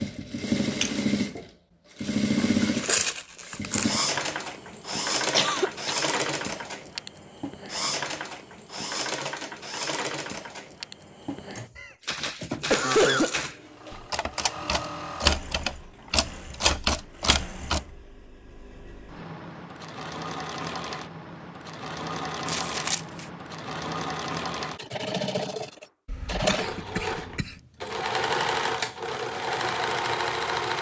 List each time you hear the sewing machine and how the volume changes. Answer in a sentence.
The sewing machine can be heard from 0.0 to 30.7 s, getting quieter then louder.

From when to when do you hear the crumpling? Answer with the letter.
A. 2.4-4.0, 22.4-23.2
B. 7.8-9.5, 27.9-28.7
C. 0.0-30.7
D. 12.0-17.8
A.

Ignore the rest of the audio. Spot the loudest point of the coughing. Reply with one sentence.
The loudest moment of the coughing is at 13 seconds.